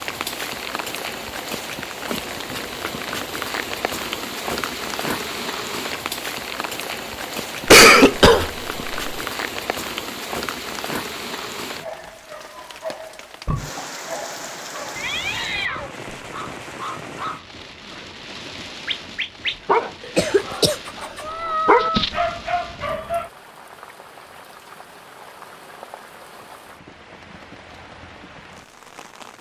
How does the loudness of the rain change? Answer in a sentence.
The volume of the rain goes down.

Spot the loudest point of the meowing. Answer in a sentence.
The volume of the meowing peaks at 22 seconds.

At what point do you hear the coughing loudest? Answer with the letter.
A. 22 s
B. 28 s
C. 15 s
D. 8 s
D.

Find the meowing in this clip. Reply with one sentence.
The meowing can be heard from 2.5 to 3.4 s, from 14.9 to 15.9 s and from 21.2 to 22.2 s.